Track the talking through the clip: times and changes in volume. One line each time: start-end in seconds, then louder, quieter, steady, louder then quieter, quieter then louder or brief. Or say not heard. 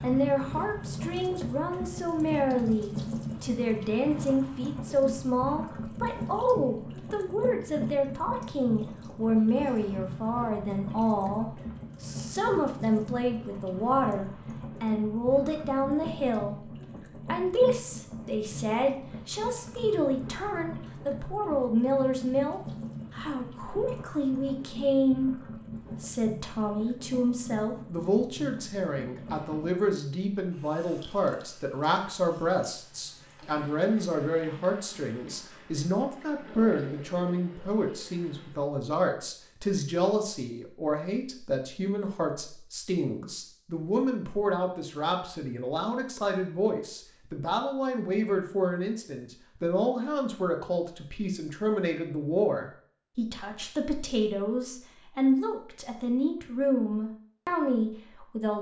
0.0-58.5 steady.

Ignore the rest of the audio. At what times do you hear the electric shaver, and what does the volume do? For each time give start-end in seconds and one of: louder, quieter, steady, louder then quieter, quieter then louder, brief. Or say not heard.
not heard.